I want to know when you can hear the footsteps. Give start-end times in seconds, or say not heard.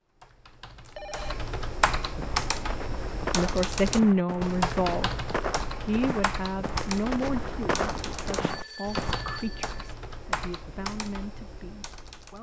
2.2-9.2.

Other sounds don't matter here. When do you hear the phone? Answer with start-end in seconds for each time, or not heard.
0.8-1.4, 8.4-9.8.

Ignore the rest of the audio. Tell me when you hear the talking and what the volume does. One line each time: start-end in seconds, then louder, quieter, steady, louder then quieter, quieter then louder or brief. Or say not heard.
3.3-12.3 quieter.